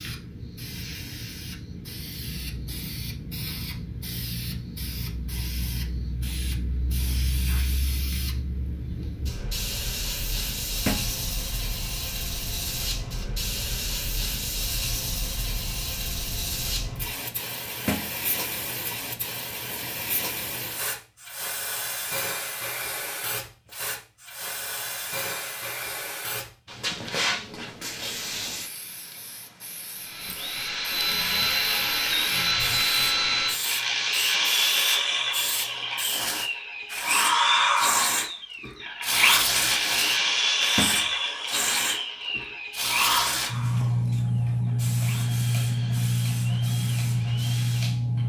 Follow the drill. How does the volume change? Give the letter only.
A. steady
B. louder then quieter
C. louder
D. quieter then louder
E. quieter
E.